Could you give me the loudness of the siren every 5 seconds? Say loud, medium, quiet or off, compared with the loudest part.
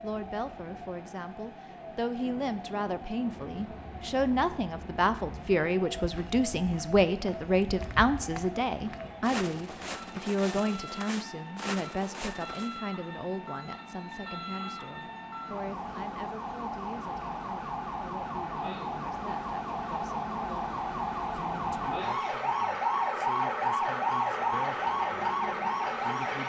quiet, quiet, quiet, medium, loud, loud.